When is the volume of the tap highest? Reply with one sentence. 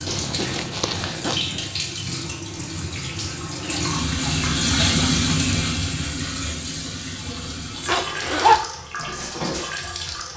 The volume of the tap peaks at 5 seconds.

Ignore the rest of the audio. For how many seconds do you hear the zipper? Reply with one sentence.
The zipper can be heard for 2 seconds in total.